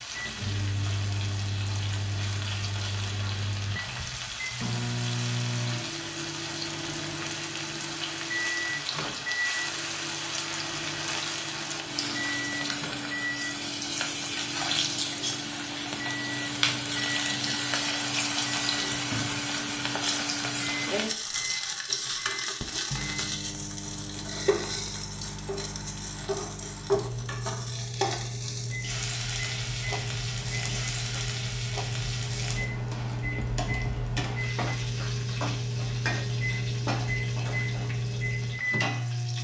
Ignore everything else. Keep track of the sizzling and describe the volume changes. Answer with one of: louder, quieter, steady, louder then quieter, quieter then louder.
louder then quieter.